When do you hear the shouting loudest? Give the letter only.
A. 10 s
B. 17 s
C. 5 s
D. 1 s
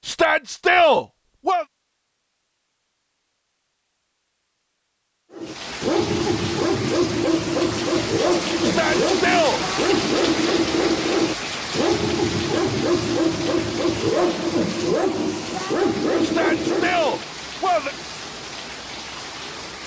D.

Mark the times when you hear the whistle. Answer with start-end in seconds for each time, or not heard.
not heard.